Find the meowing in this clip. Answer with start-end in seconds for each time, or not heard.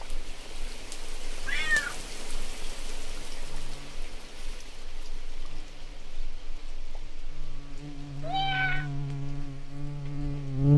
1.4-2.0, 8.2-8.9.